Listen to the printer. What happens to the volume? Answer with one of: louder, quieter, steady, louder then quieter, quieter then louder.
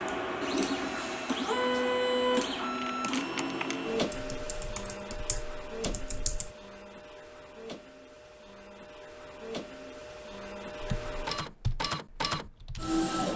quieter then louder.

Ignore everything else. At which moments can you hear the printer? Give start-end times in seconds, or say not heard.
0.0-13.3.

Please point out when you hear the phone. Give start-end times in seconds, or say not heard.
not heard.